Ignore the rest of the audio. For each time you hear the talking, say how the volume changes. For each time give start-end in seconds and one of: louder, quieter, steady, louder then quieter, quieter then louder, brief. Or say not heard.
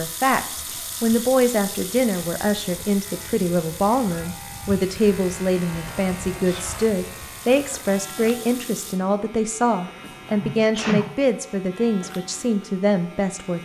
0.0-13.6 steady.